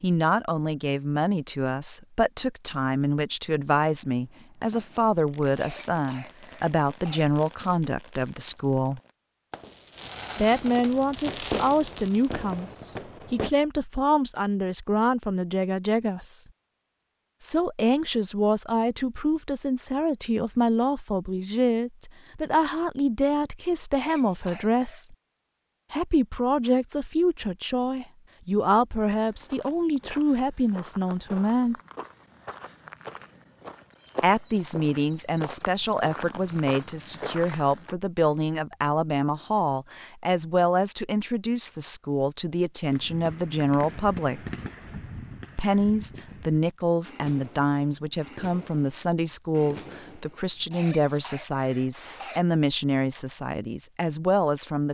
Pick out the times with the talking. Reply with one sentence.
The talking can be heard from 0.0 to 9.0 s, from 10.3 to 16.4 s, from 17.4 to 25.1 s, from 25.9 to 31.8 s, from 34.2 to 44.4 s and from 45.5 to 54.9 s.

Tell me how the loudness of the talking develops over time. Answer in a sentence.
The volume of the talking stays about the same.